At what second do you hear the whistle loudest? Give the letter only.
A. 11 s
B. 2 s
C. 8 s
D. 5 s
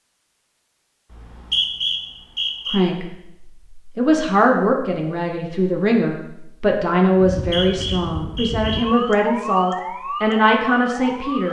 B.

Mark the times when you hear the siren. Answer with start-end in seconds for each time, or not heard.
7.2-11.4.